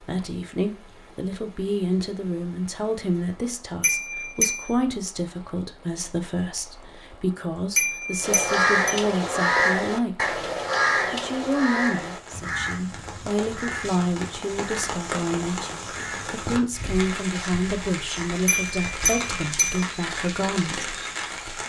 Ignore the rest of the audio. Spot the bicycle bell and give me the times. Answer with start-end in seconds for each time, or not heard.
3.8-4.7, 7.8-8.9, 18.4-19.8.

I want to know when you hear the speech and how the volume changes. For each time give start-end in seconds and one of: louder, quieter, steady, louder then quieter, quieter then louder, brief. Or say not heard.
0.0-10.3 steady
11.1-20.9 steady.